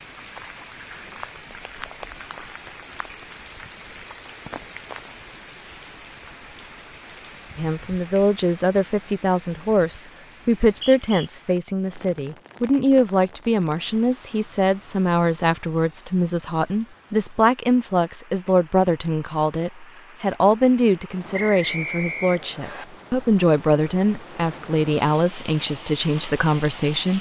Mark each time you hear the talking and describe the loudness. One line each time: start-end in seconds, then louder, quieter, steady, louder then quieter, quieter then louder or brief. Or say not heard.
7.5-27.1 steady.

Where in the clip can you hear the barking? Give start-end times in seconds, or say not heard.
not heard.